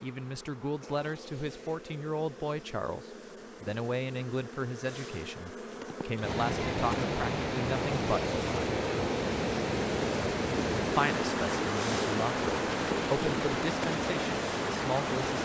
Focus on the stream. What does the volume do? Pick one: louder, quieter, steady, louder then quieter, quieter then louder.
steady.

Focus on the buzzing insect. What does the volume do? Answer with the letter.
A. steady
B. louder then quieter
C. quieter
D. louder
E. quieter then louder
D.